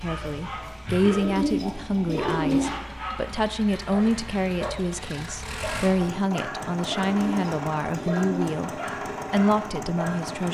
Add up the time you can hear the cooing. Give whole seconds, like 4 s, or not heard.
3 s.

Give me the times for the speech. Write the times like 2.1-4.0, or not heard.
0.0-8.7, 9.3-10.4.